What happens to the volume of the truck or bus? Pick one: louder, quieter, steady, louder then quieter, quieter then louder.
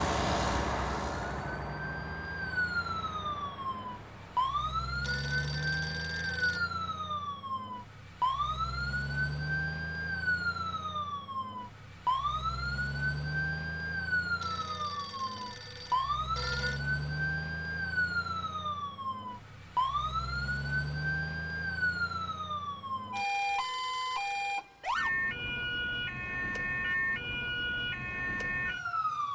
quieter.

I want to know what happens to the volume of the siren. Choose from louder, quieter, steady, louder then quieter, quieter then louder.
steady.